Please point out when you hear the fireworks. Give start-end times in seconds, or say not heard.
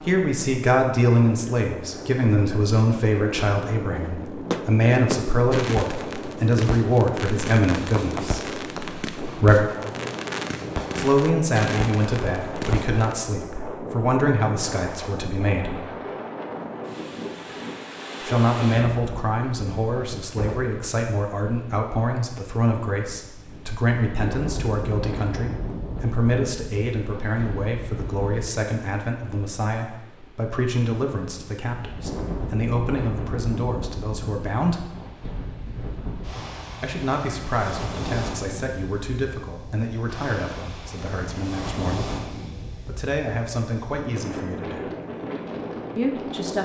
4.0-13.2.